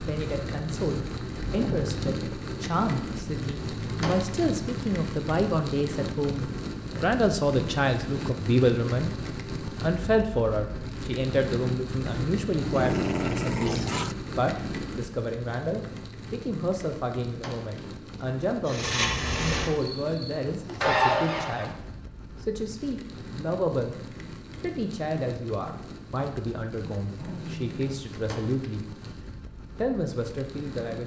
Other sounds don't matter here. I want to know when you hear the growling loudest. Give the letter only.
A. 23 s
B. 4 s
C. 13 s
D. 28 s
C.